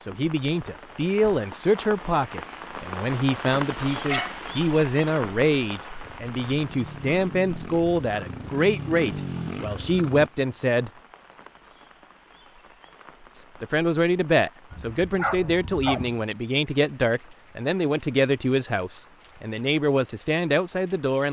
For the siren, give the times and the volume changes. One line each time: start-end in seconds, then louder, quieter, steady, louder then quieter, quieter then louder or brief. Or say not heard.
not heard.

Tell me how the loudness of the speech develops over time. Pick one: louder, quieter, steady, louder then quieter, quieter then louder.
steady.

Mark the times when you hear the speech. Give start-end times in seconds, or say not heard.
0.0-10.9, 13.6-21.2.